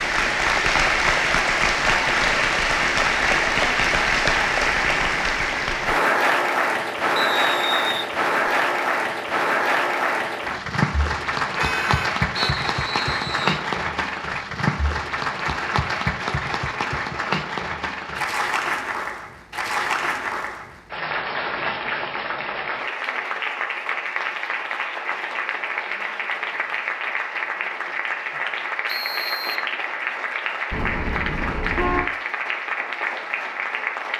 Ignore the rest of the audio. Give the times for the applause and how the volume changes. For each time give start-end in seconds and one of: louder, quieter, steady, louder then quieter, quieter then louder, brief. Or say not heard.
0.0-34.1 quieter.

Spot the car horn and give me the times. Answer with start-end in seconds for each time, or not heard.
11.6-12.5, 30.7-32.1.